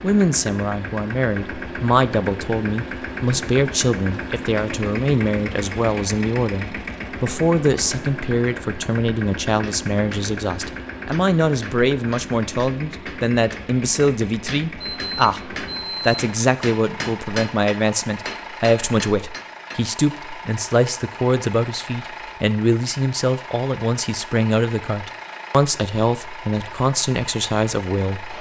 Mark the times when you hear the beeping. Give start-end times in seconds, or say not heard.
14.8-16.2.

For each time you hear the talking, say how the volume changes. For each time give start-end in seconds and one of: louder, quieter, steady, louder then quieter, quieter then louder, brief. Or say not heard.
0.0-28.3 steady.